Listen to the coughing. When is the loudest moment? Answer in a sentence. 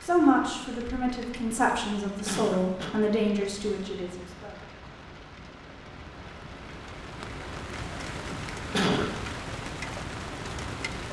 The loudest moment of the coughing is at 9 seconds.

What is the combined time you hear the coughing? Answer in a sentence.
The coughing can be heard for 2 seconds in total.